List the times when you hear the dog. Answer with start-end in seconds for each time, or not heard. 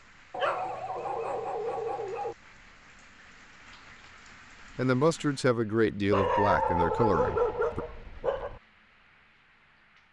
0.3-2.4, 6.1-8.6.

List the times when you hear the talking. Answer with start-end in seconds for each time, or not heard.
4.8-7.8.